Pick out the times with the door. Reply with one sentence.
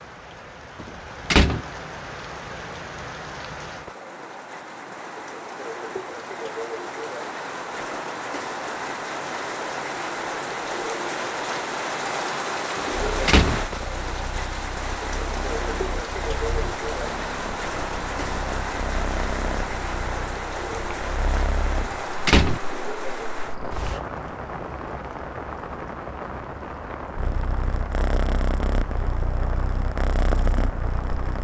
You can hear the door from 0.8 to 1.6 s, from 12.8 to 13.6 s and from 21.8 to 22.6 s.